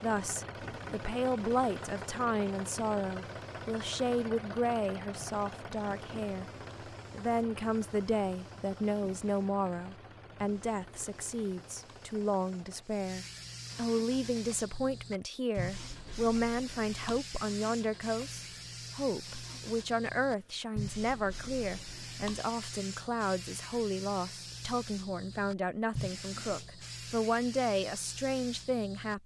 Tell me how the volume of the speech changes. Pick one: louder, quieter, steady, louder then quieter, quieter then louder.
steady.